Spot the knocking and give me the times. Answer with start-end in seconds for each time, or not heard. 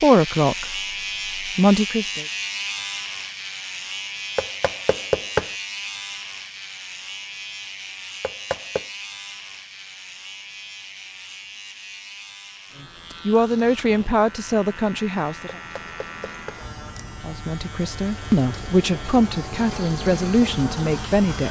4.3-5.5, 8.2-8.8, 15.6-16.6.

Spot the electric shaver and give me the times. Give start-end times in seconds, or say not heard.
0.0-21.4.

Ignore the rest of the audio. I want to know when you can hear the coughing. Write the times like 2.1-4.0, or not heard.
not heard.